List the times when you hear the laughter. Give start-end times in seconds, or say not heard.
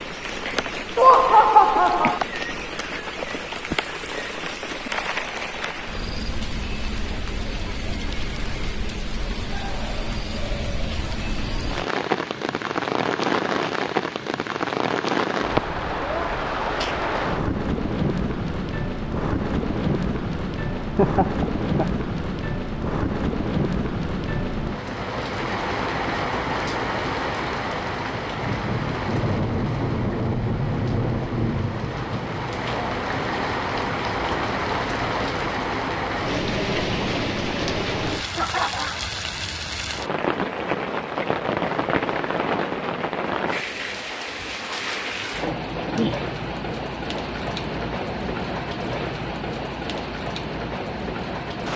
0.9-2.2, 20.8-21.9, 38.4-39.0.